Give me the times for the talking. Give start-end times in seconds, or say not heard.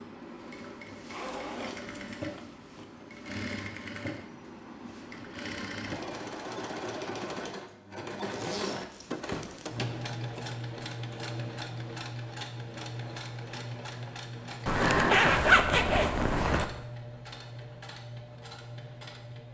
not heard.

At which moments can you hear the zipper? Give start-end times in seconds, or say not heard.
1.1-2.9, 8.3-9.8, 14.7-16.6.